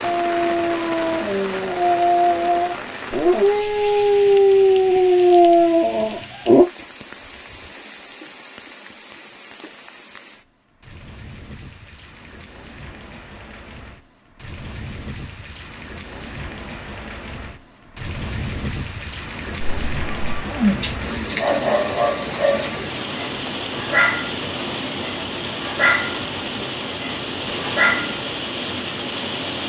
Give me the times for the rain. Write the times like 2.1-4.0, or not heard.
0.0-29.6.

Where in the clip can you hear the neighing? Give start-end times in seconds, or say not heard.
20.4-20.9.